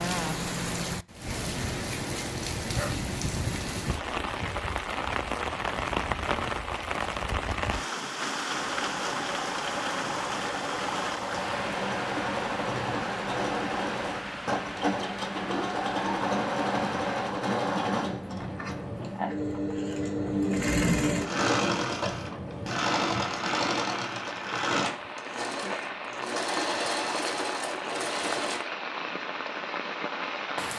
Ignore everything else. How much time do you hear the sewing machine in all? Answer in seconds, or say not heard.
20 s.